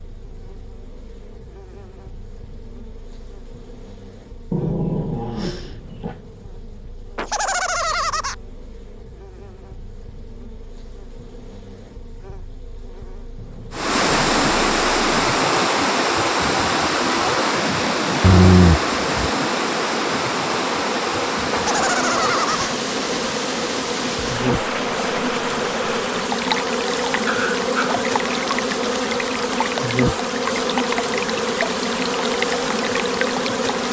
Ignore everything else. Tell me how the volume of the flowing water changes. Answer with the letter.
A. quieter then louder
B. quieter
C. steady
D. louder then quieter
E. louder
B.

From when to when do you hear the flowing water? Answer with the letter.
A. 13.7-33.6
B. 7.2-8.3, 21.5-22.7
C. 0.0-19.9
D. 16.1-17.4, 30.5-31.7
A.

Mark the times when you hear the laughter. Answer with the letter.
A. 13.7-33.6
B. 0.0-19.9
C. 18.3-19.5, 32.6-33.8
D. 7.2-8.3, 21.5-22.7
D.